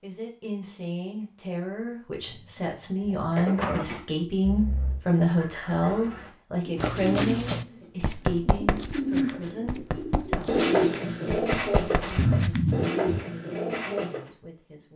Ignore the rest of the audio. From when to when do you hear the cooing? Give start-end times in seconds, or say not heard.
3.0-14.3.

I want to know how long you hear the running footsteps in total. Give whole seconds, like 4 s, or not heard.
6 s.